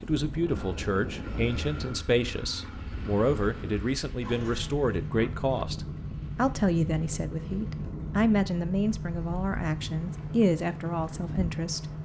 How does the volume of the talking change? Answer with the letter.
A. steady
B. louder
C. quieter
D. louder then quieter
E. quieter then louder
A.